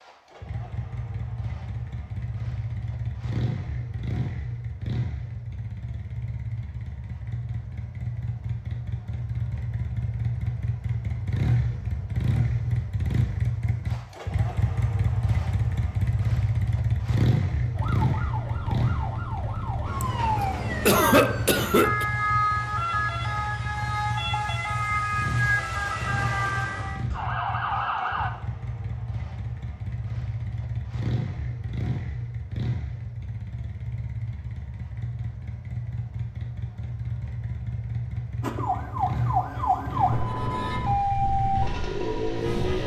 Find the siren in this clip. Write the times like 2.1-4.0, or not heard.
17.8-28.3, 38.4-42.8.